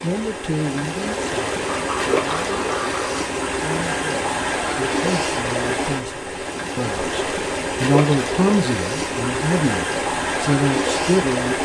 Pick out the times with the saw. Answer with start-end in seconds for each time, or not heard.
1.8-3.2.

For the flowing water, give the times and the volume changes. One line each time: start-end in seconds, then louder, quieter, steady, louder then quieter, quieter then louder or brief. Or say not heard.
0.0-11.6 steady.